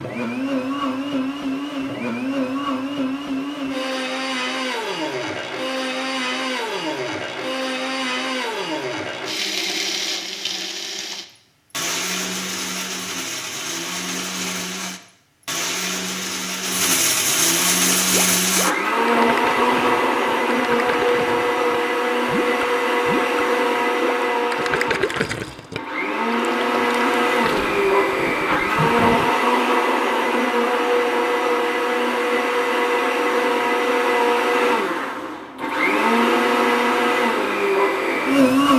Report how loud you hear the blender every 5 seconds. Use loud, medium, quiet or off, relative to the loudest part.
medium, medium, medium, loud, loud, loud, loud, loud.